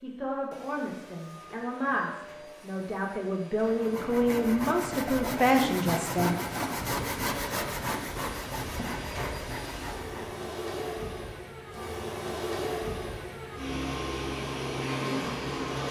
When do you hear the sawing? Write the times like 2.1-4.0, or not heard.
3.6-10.4.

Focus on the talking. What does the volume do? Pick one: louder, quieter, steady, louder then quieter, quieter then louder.
louder.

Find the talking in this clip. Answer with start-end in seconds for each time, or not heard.
0.0-6.3.